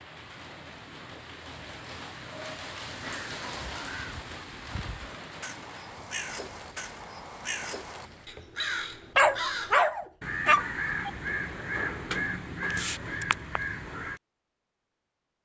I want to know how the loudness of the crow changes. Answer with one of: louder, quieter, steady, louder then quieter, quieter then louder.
louder.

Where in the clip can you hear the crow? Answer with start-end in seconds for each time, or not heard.
3.0-14.2.